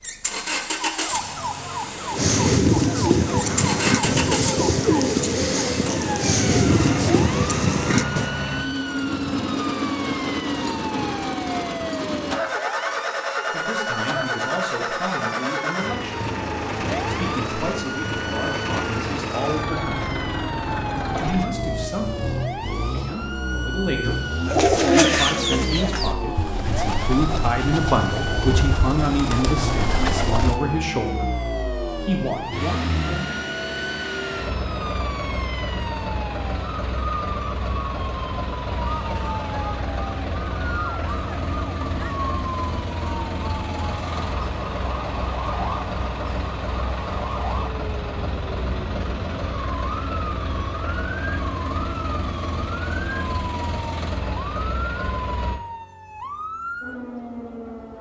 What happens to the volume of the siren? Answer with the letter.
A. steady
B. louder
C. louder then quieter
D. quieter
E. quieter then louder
A.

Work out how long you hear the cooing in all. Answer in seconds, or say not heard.
12 s.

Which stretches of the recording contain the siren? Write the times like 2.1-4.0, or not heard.
0.0-57.9.